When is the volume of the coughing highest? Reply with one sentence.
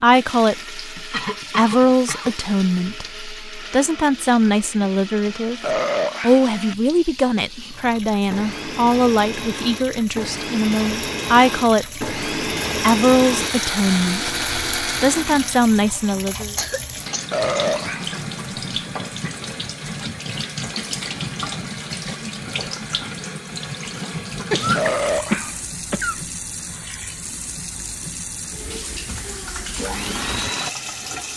The volume of the coughing peaks at 25 seconds.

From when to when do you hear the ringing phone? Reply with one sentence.
You can't hear the ringing phone here.